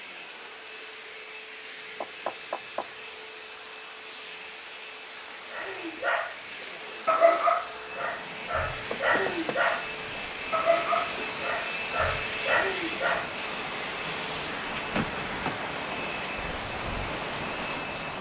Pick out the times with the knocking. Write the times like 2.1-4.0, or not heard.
2.0-2.9, 8.9-9.6, 14.9-15.6.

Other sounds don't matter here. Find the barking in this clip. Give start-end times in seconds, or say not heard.
5.5-6.3, 7.0-9.9, 10.5-13.3.